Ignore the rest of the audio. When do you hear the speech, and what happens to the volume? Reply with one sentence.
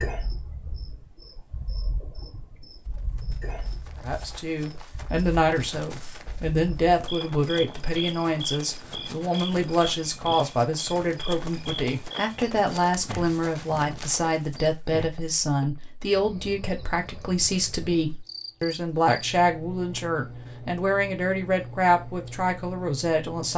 The speech can be heard from 4.0 to 23.5 s, at a steady volume.